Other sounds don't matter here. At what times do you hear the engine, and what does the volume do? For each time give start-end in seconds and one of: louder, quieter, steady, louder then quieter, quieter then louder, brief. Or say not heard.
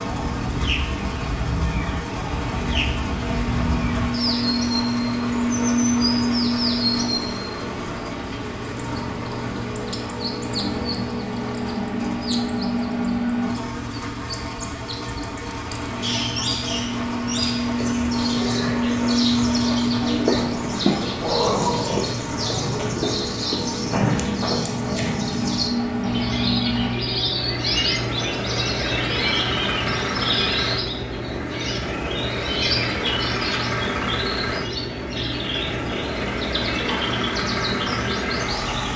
0.0-38.9 steady.